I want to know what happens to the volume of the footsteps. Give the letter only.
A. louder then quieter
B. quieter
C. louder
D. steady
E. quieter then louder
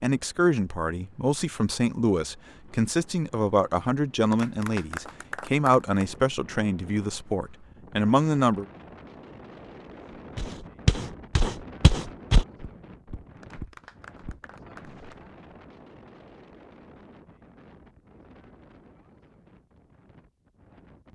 B.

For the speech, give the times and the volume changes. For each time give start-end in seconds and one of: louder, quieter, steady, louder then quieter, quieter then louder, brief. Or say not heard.
0.0-8.7 steady.